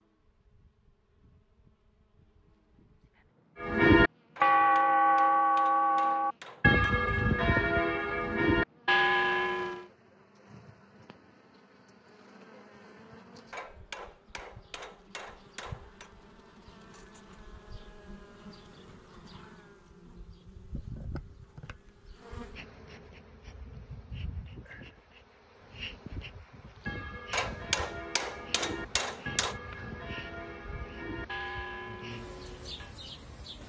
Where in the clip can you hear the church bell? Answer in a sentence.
The church bell can be heard from 3.6 to 9.8 s and from 26.9 to 33.0 s.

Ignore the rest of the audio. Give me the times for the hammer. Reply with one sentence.
The hammer can be heard from 4.3 to 6.8 s, from 13.5 to 16.1 s and from 27.3 to 29.6 s.